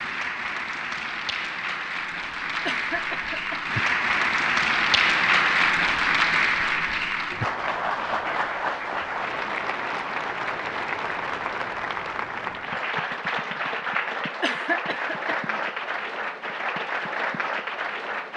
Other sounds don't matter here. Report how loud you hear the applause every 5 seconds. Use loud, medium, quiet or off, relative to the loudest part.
loud, loud, medium, medium.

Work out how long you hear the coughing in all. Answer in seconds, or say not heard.
2 s.